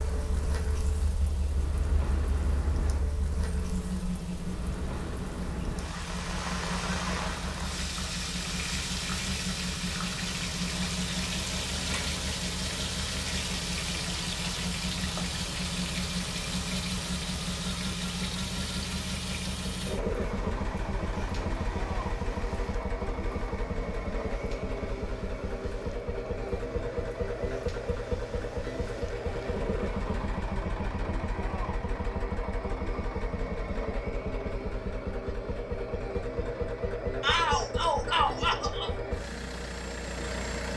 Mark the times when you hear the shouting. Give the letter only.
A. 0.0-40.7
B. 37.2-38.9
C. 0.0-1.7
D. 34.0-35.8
B.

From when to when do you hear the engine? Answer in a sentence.
You can hear the engine from 0.0 to 40.7 s.